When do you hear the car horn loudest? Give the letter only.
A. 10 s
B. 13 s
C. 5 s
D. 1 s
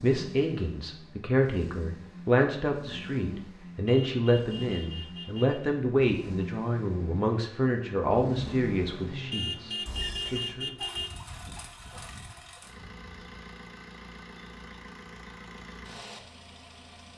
A.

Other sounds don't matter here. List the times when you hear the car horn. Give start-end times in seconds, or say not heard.
3.9-5.6, 9.3-11.1.